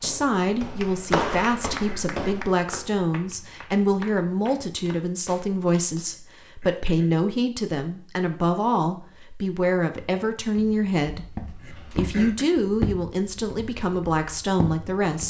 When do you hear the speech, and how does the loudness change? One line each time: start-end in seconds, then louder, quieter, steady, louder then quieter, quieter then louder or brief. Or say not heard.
0.0-15.2 steady.